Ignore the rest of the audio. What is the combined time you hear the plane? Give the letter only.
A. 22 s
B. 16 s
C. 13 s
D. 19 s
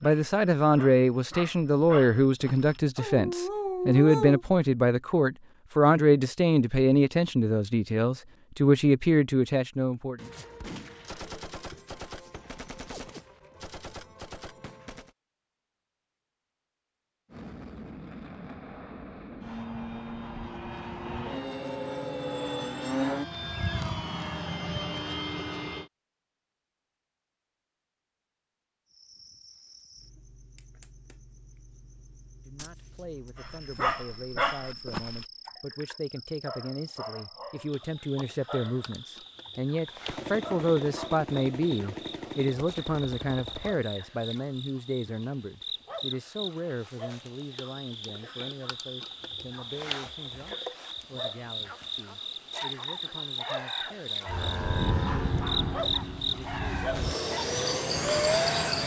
C.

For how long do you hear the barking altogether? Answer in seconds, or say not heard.
18 s.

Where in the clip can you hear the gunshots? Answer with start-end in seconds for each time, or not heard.
10.2-15.2, 32.5-33.3, 40.0-43.8.